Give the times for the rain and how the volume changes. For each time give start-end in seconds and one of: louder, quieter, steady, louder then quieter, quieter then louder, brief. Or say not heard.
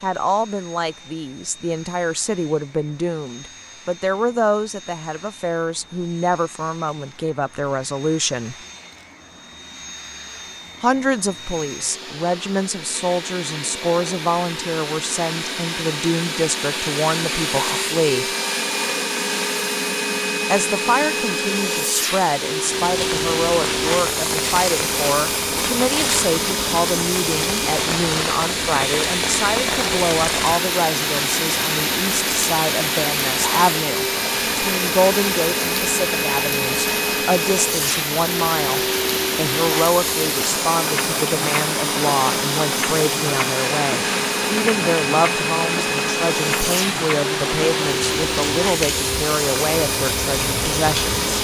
22.8-51.3 steady.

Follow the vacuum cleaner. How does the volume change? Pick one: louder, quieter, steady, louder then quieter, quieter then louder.
louder.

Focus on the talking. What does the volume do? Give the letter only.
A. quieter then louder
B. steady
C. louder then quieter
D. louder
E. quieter
B.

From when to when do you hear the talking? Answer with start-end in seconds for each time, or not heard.
0.0-8.6, 10.8-18.2, 20.5-51.1.